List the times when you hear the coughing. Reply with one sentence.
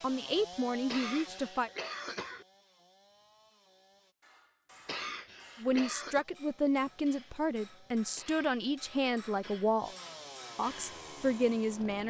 You can hear the coughing from 0.8 to 2.5 s, from 4.8 to 6.2 s and from 8.2 to 9.7 s.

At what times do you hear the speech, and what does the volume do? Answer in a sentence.
The speech can be heard briefly from 0.0 to 1.7 s; from 5.6 to 9.9 s, at a steady volume; and briefly from 10.6 to 12.0 s.